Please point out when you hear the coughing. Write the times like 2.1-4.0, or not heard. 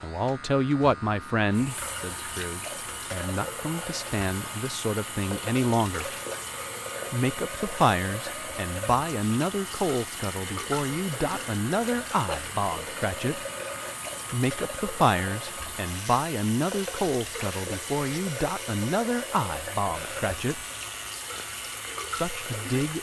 not heard.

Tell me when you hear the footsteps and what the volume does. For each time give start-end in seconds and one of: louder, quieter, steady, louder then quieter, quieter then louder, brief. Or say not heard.
not heard.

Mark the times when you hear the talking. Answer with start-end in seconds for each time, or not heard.
0.0-6.1, 7.1-13.4, 14.3-20.6, 22.1-22.9.